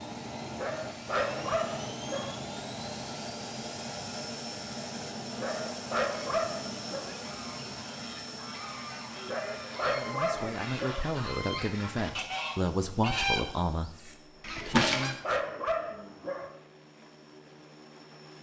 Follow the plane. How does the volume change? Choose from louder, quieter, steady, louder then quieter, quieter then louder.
quieter.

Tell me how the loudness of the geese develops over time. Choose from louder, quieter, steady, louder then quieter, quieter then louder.
louder.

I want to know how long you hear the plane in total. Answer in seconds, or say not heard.
18 s.